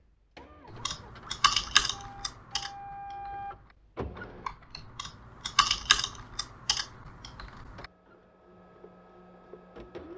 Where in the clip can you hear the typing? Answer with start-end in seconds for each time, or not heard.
0.7-7.8.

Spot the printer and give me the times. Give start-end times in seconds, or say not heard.
0.0-4.5, 7.7-10.1.